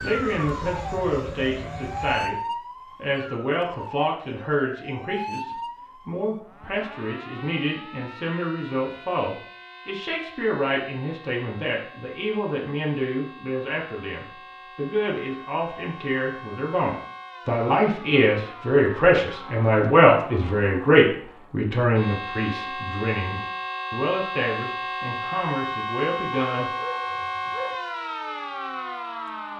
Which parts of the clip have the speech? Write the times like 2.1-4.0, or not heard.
0.0-2.4, 3.0-26.7.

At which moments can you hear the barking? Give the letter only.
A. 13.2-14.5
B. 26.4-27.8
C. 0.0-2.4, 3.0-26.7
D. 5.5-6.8
B.